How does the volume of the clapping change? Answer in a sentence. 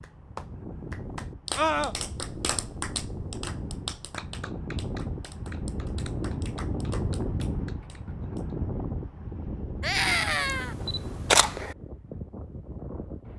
The volume of the clapping goes down.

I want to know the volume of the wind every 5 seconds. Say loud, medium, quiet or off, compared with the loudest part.
medium, loud, medium.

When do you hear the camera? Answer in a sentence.
You can hear the camera from 10.4 to 11.8 s.